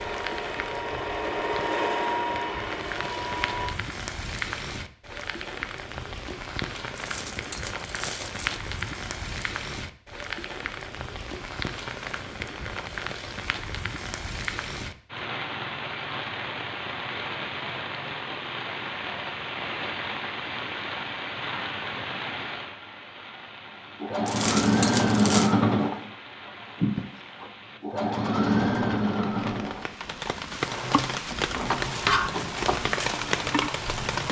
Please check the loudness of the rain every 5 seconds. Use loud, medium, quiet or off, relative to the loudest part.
medium, medium, medium, medium, medium, quiet, loud.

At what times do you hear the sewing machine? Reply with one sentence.
The sewing machine can be heard from 0.0 to 3.8 s and from 24.0 to 34.2 s.